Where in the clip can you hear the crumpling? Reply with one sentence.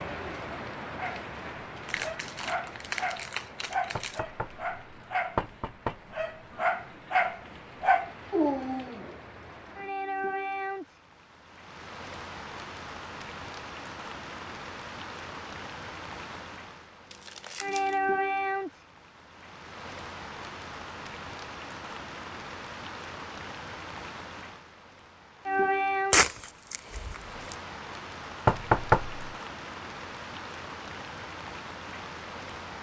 You can hear the crumpling from 1.9 to 4.2 s, from 17.1 to 17.9 s and from 26.1 to 27.6 s.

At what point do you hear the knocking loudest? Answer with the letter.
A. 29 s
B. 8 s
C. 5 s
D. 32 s
A.